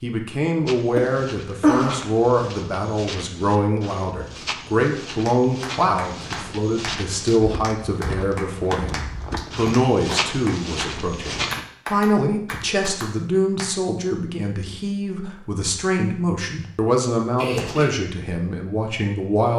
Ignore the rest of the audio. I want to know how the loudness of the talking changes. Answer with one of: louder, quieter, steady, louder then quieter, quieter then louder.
steady.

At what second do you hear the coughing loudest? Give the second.
2 s.